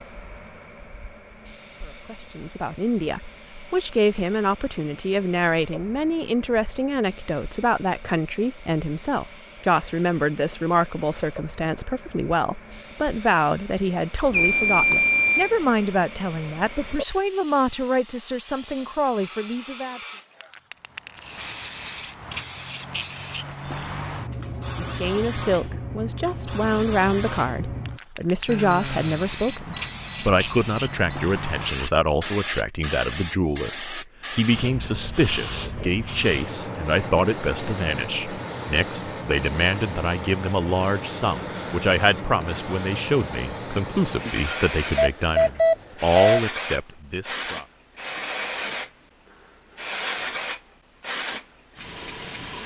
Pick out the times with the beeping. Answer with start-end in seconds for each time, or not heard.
14.3-15.5, 28.4-31.2, 44.4-46.4.